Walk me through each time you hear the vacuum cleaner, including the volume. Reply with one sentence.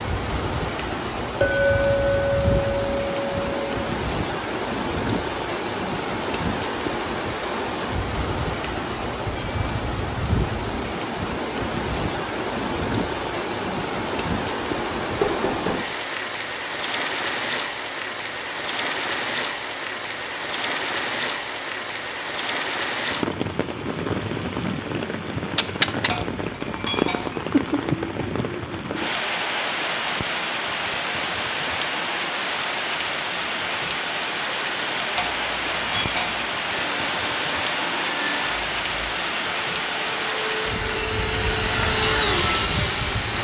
The vacuum cleaner can be heard from 36.7 to 43.3 s, getting louder.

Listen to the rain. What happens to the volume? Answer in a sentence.
The volume of the rain stays about the same.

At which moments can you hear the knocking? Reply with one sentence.
The knocking can be heard from 15.2 to 15.9 s.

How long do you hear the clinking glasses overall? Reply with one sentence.
The clinking glasses can be heard for 5 seconds in total.